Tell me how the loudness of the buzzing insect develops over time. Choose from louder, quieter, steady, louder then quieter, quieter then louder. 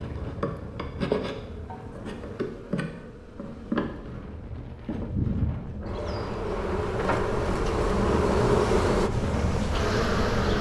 louder.